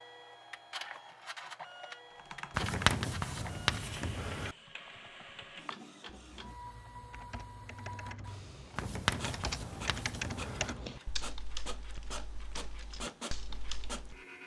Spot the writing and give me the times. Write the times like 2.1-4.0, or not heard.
2.5-4.5, 8.8-10.8.